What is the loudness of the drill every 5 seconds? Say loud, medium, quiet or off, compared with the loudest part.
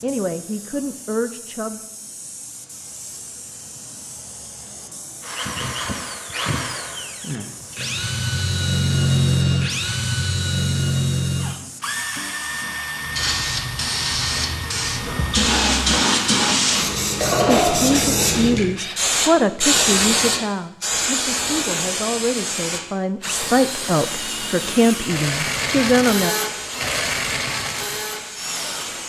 off, loud, loud, medium, medium, loud.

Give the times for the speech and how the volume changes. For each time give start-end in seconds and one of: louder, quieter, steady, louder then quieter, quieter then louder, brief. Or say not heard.
0.0-1.8 brief
17.4-26.4 quieter then louder.